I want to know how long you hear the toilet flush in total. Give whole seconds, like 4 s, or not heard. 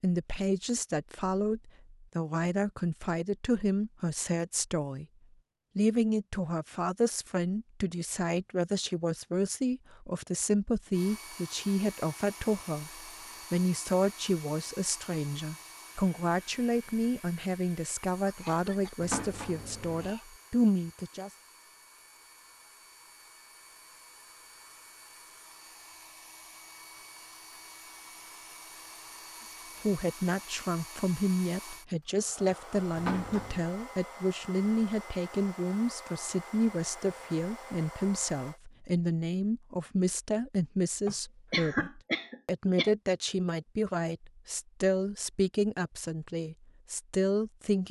2 s.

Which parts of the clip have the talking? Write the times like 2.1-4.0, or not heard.
0.0-5.0, 5.8-21.3, 29.9-47.8.